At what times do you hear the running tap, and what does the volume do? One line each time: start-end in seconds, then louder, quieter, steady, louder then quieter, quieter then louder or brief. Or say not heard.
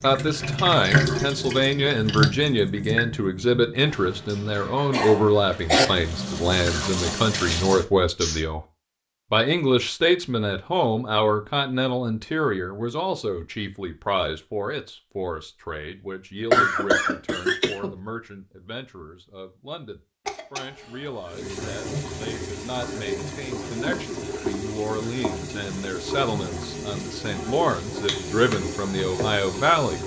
0.0-8.4 quieter then louder
21.3-30.0 steady.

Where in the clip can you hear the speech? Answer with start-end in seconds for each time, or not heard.
0.0-8.7, 9.3-30.0.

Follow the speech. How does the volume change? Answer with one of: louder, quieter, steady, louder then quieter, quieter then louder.
quieter then louder.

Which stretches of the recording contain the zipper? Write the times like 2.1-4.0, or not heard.
not heard.